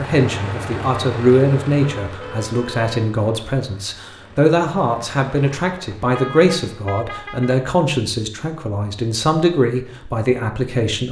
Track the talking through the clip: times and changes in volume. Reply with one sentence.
The talking can be heard from 0.0 to 11.0 s, at a steady volume.